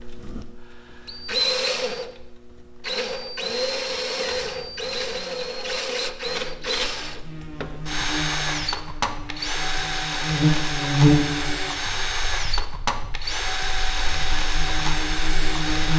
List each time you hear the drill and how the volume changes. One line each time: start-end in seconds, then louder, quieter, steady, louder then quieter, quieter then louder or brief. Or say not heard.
0.0-15.9 steady.